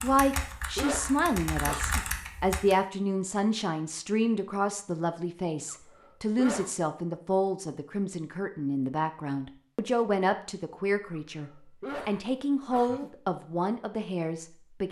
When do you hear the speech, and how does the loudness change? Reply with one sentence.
The speech can be heard from 0.0 to 14.8 s, at a steady volume.